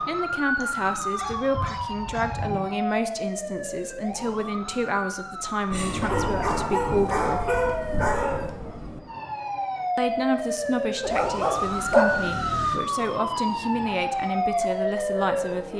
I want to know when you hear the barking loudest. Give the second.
12 s.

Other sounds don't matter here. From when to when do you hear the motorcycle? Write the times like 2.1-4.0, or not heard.
not heard.